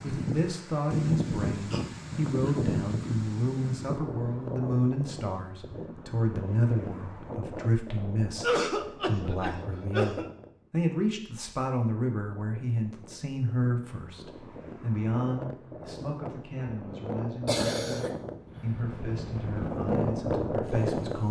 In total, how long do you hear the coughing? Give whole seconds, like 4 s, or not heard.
4 s.